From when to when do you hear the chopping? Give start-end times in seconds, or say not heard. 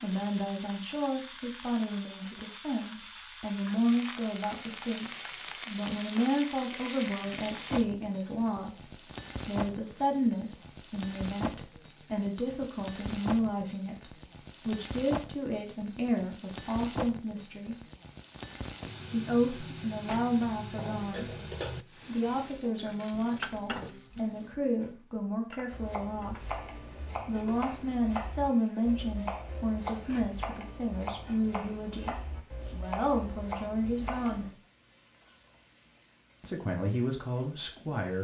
25.7-34.5.